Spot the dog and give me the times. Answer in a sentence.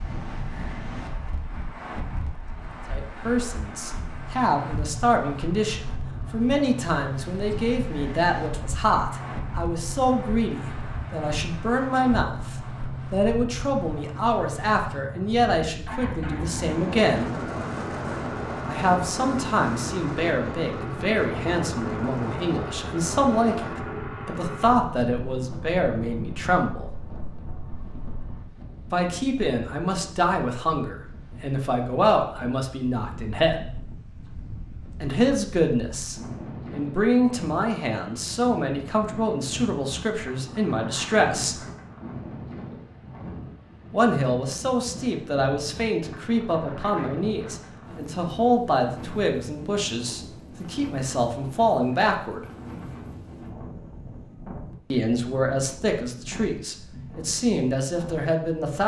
You can't hear the dog here.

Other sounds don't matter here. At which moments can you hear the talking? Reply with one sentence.
You can hear the talking from 2.9 to 17.2 s, from 18.6 to 26.9 s, from 28.9 to 33.8 s, from 35.0 to 41.5 s, from 43.9 to 52.5 s and from 54.9 to 58.8 s.